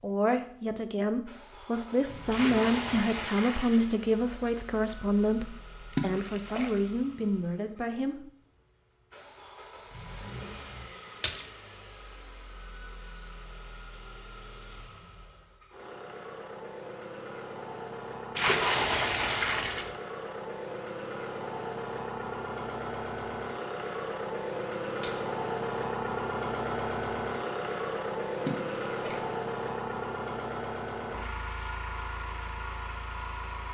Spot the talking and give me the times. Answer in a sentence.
You can hear the talking from 0.0 to 8.3 s.